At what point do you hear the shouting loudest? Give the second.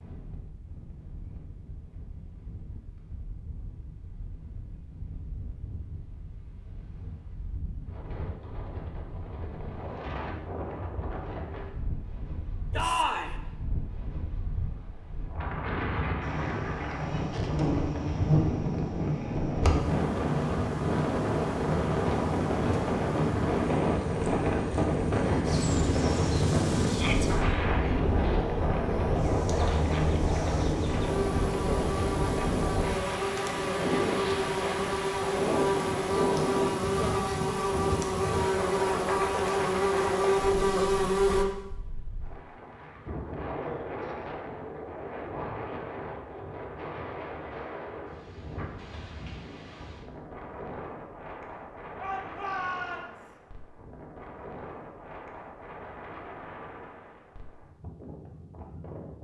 13 s.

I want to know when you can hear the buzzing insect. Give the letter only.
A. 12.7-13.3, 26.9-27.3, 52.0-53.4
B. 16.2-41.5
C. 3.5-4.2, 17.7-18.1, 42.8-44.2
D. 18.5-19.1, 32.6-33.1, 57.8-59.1
B.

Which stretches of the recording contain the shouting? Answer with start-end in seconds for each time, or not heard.
12.7-13.3, 26.9-27.3, 52.0-53.4.